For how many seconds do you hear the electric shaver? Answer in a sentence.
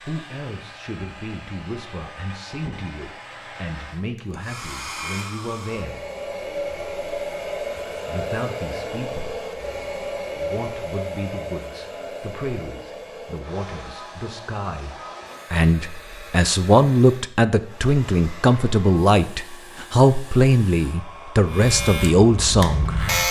The electric shaver can be heard for 2 seconds in total.